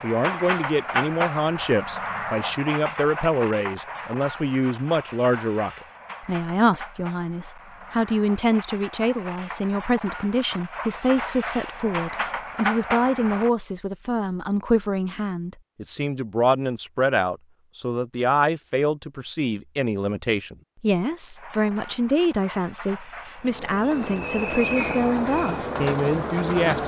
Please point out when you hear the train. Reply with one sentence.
The train can be heard from 0.0 to 13.5 s and from 21.4 to 26.8 s.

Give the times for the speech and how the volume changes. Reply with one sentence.
You can hear the speech from 0.0 to 26.8 s, at a steady volume.